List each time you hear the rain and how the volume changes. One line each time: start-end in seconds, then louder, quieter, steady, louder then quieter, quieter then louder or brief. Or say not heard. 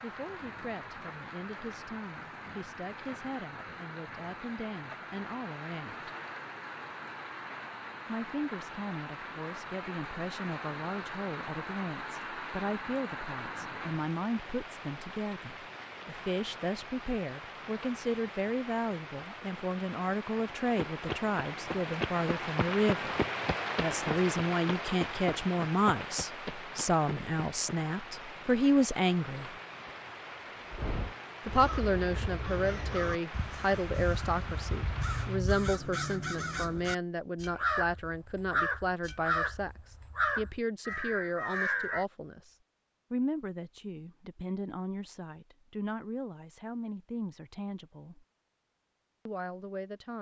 0.0-35.5 louder then quieter.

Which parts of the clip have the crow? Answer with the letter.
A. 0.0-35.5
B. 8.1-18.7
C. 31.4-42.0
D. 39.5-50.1
C.